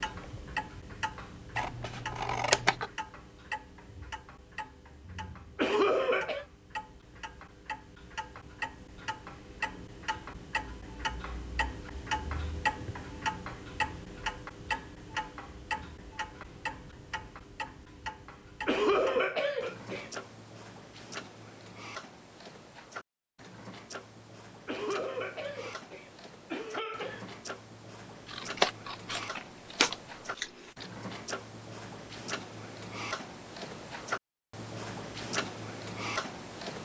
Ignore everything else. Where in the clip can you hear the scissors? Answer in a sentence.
You can hear the scissors from 1.6 to 2.9 s and from 28.2 to 30.9 s.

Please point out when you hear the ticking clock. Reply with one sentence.
You can hear the ticking clock from 0.0 to 36.7 s.